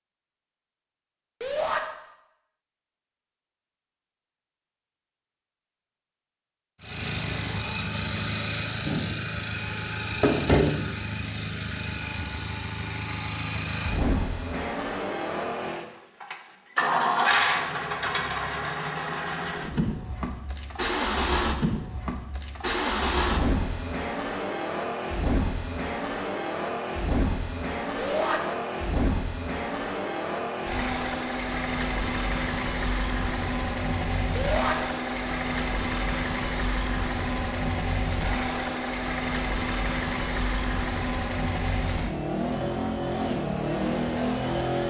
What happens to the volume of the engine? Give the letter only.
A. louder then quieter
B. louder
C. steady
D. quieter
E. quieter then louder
C.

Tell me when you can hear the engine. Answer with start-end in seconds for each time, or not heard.
6.8-44.8.